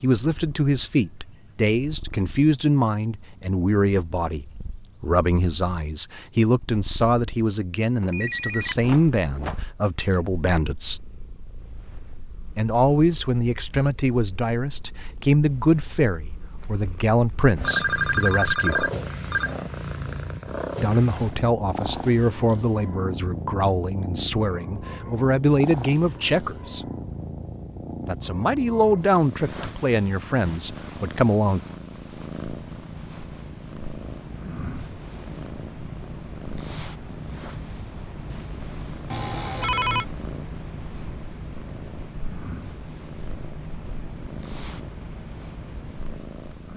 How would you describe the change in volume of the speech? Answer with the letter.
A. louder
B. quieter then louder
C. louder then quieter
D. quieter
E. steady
E.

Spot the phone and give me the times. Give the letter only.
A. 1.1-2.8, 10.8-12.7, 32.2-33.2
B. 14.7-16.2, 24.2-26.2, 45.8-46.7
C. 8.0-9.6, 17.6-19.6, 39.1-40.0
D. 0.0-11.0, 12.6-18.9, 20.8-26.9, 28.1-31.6
C.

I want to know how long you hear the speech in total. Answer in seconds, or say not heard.
27 s.